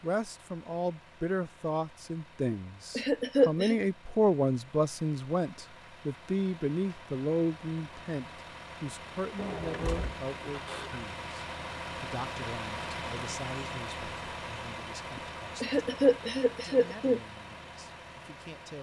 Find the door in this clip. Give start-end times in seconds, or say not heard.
9.3-11.1.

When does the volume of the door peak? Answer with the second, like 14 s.
10 s.